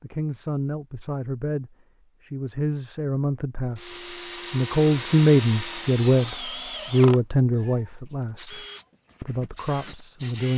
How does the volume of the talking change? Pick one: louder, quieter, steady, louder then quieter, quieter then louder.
louder then quieter.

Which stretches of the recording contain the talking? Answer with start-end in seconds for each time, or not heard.
0.0-10.5.